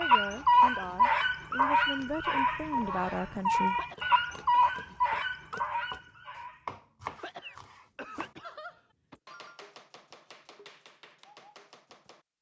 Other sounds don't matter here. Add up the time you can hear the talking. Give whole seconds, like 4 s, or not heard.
4 s.